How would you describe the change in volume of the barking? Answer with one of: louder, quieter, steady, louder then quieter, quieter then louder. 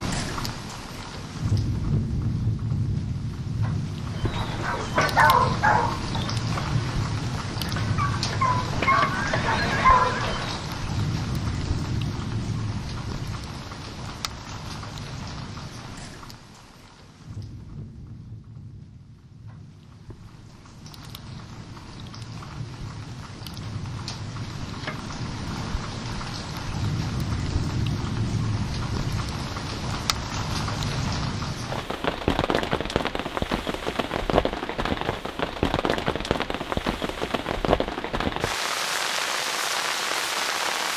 quieter then louder.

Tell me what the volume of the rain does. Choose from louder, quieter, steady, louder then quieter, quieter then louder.
quieter then louder.